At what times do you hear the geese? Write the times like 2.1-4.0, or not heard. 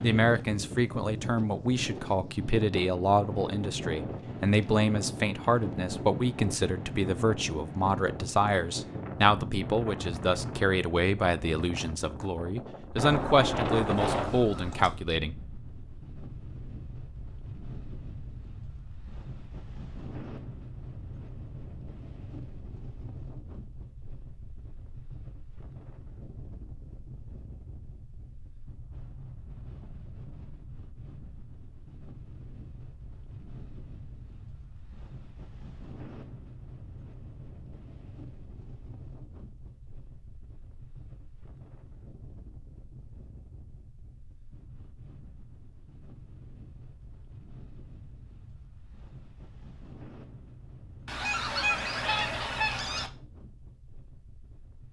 12.9-14.9, 51.0-53.1.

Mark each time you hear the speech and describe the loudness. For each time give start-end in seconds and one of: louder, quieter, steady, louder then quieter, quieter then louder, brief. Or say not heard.
0.0-15.3 steady.